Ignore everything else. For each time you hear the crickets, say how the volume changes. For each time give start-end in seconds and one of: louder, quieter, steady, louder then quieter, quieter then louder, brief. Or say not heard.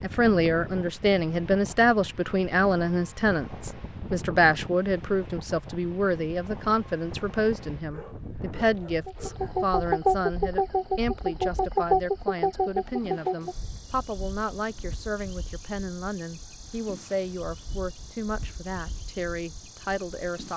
9.1-20.5 quieter.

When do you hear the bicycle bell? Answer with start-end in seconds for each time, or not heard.
not heard.